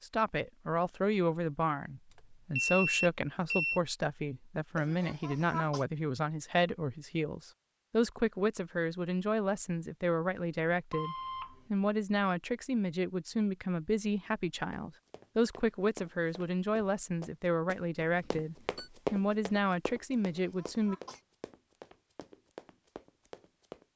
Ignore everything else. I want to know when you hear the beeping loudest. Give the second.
3 s.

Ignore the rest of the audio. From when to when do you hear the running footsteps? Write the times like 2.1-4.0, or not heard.
14.7-23.9.